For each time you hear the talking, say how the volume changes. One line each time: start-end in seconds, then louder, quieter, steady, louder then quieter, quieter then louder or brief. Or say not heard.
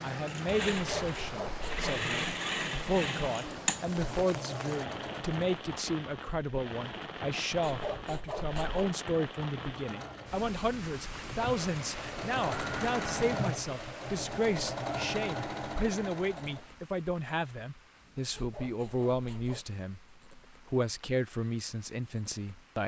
0.0-22.8 steady.